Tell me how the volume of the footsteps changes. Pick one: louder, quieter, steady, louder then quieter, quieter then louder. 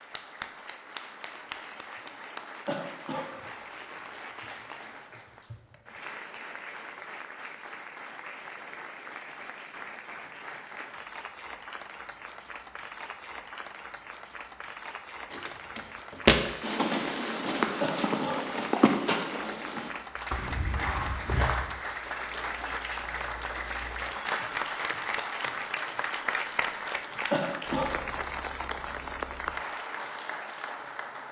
quieter.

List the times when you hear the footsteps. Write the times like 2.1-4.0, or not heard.
15.3-21.7.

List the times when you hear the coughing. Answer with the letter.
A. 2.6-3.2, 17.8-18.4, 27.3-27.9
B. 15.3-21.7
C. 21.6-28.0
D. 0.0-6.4
A.